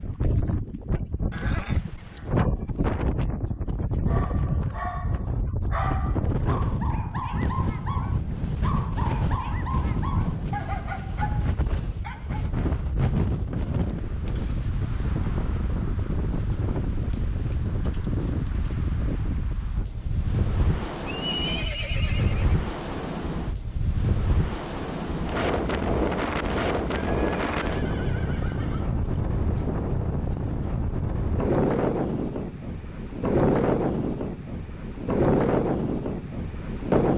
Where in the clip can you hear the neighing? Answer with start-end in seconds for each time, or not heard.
1.3-2.3, 21.1-22.6, 26.9-29.0.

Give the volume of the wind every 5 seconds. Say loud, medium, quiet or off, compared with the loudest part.
medium, medium, medium, medium, medium, loud, loud, loud.